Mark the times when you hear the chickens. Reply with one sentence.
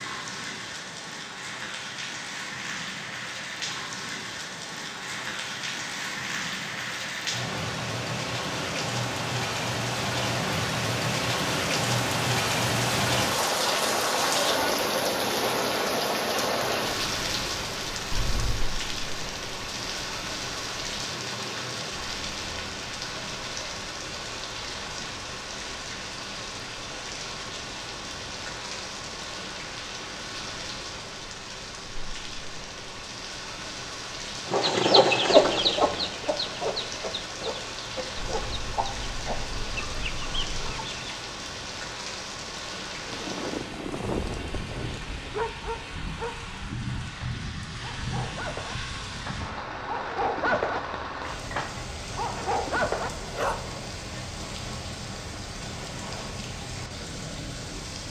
The chickens can be heard from 34.5 to 41.1 s.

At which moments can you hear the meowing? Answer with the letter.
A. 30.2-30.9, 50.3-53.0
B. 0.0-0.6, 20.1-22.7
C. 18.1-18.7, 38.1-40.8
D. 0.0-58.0
C.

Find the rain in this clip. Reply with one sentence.
You can hear the rain from 0.0 to 58.0 s.